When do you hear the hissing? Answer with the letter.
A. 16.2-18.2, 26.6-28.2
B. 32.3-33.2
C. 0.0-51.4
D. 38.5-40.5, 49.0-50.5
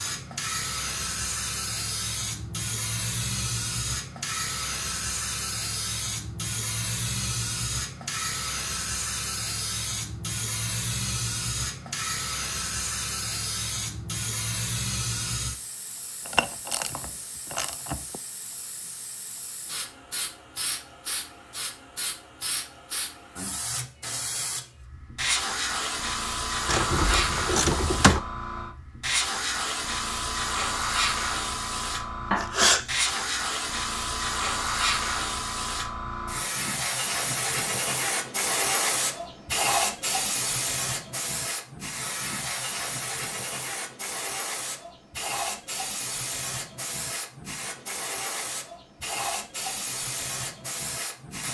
C.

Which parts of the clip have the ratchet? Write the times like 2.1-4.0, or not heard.
16.2-18.2, 26.6-28.2.